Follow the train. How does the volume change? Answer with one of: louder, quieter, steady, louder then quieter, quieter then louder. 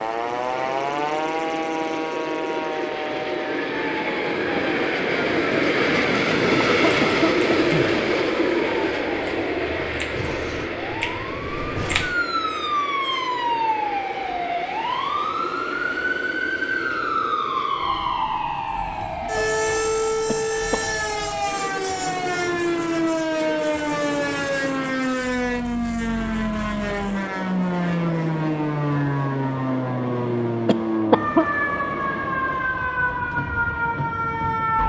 quieter.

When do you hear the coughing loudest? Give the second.
31 s.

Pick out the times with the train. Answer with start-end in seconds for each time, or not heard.
0.0-34.8.